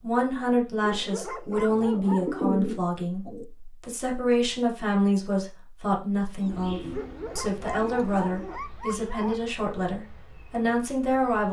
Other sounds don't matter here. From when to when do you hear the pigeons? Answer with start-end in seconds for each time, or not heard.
1.4-3.5, 6.4-8.6.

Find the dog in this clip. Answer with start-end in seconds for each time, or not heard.
0.8-2.5, 6.9-9.4.